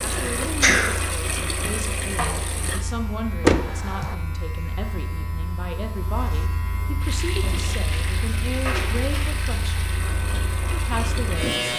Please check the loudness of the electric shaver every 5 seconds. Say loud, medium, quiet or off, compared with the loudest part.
medium, medium, loud.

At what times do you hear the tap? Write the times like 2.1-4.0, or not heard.
0.0-2.9, 7.0-11.7.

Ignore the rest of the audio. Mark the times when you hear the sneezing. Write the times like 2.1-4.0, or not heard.
0.1-1.0.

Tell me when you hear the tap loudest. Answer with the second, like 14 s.
2 s.